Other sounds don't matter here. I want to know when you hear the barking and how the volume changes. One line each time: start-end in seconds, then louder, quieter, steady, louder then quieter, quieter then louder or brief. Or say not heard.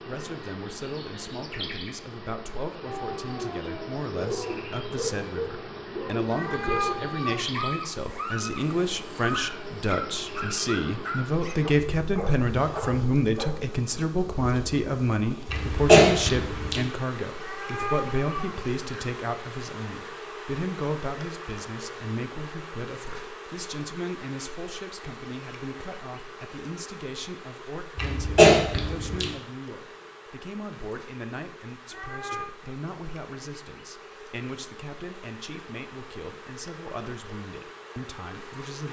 2.9-13.5 steady.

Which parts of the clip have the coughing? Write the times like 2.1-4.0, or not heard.
15.5-16.8, 27.9-29.3.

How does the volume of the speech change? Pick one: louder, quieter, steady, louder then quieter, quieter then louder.
louder then quieter.